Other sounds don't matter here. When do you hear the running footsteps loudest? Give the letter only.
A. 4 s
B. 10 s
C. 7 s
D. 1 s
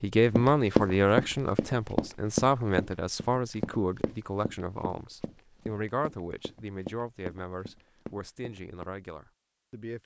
D.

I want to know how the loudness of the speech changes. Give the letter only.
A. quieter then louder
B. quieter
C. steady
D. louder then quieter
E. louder
B.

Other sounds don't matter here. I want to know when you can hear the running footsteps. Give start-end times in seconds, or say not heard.
0.3-8.9.